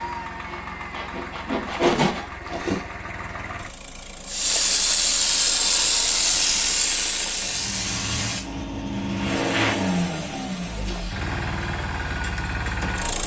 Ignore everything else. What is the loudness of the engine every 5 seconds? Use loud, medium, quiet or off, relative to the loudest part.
medium, loud, loud.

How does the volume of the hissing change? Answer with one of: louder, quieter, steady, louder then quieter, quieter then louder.
quieter.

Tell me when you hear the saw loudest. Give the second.
2 s.